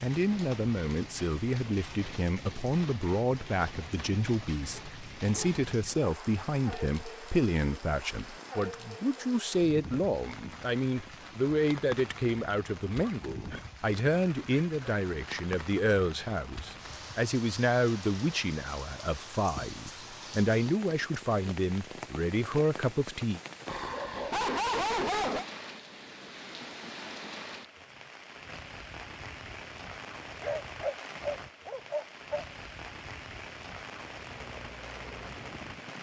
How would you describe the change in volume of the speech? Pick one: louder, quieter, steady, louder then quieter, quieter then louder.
steady.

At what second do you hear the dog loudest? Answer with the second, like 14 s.
25 s.